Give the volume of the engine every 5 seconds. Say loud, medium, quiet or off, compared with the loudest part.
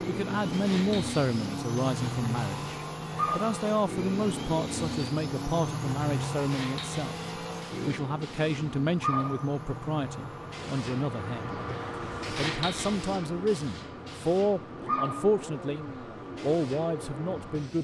loud, loud, medium, medium.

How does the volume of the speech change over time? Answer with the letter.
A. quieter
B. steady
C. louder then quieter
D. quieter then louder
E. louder
B.